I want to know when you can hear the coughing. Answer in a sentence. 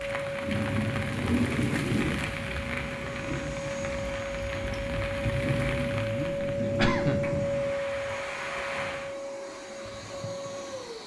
You can hear the coughing from 5.9 to 7.3 s.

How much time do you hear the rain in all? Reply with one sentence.
You can hear the rain for 9 seconds altogether.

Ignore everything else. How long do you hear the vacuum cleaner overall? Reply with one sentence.
You can hear the vacuum cleaner for 11 seconds altogether.